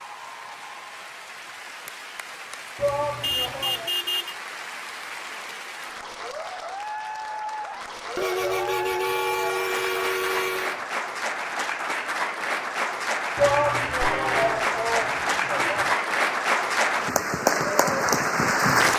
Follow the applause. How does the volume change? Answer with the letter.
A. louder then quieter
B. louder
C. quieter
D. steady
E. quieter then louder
B.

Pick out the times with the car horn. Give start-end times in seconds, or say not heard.
3.2-4.3, 8.2-10.8, 14.0-14.7.